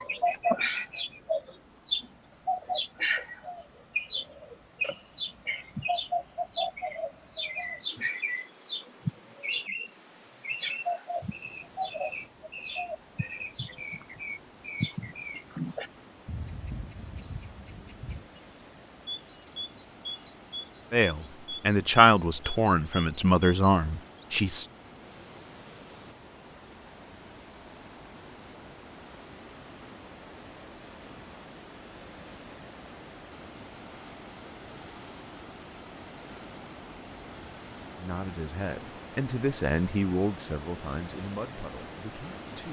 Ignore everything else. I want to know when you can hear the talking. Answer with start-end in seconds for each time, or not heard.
20.9-24.6, 38.0-42.6.